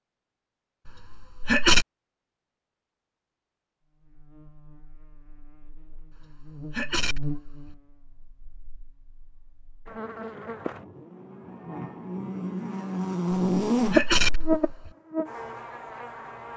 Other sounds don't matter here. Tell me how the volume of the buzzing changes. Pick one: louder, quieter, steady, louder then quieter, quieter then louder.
louder.